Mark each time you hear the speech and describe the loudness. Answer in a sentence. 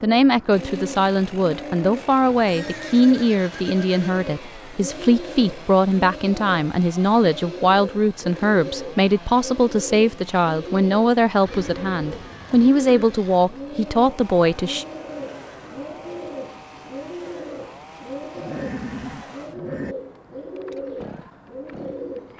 The speech can be heard from 0.0 to 14.8 s, at a steady volume.